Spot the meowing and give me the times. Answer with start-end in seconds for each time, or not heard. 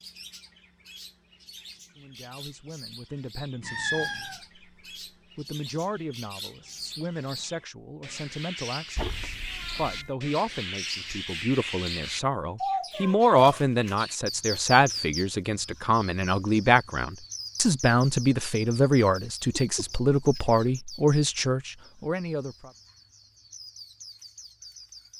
3.6-4.4, 8.9-10.1, 19.5-20.6.